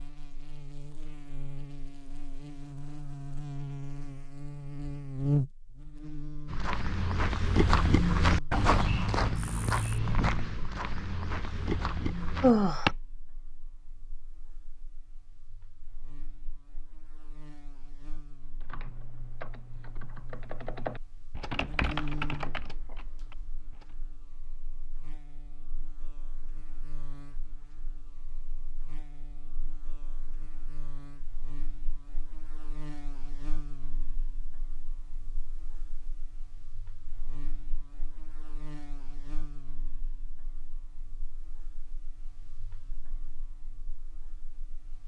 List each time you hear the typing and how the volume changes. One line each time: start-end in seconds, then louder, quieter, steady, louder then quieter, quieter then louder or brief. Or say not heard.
18.6-23.9 louder then quieter.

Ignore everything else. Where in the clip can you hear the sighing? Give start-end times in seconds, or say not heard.
12.4-12.9.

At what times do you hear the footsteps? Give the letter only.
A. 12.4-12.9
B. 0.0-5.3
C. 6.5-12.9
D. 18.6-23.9
C.